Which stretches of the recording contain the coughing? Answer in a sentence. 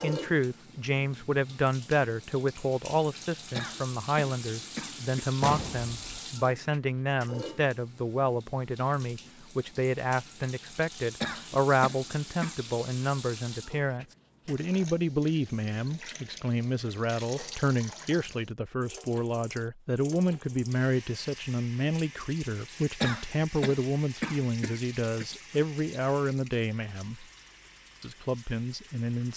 The coughing can be heard from 3.5 to 5.3 s, from 11.2 to 12.6 s and from 23.0 to 25.2 s.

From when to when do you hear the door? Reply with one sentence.
You can hear the door from 5.4 to 6.2 s.